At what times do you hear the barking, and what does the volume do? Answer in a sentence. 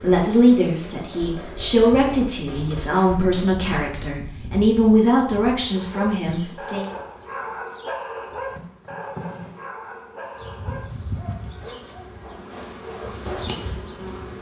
The barking can be heard from 5.6 to 13.3 s, getting quieter.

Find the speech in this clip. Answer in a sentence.
You can hear the speech from 0.0 to 6.9 s.